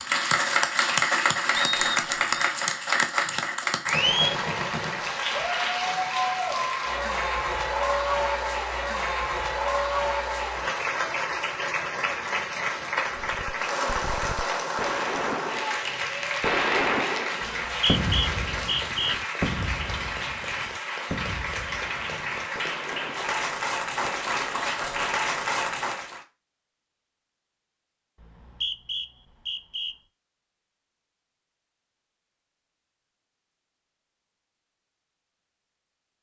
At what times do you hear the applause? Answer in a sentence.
The applause can be heard from 0.0 to 26.2 s.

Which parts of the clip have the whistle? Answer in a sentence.
You can hear the whistle from 1.6 to 2.5 s, from 17.4 to 19.1 s and from 28.2 to 29.9 s.